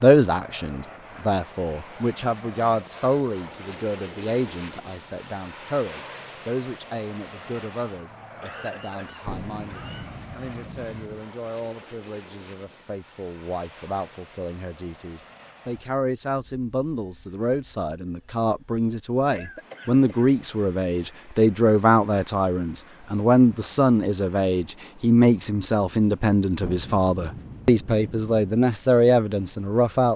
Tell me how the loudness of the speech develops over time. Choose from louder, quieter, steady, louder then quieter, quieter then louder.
quieter then louder.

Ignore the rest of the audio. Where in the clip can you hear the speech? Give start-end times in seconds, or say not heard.
0.0-30.1.